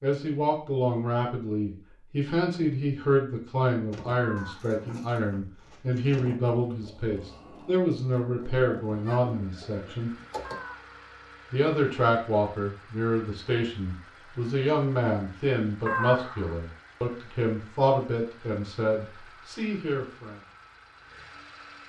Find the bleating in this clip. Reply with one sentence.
You can't hear the bleating here.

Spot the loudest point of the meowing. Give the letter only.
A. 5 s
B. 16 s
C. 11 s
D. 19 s
B.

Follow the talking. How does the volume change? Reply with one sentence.
The loudness of the talking stays about the same.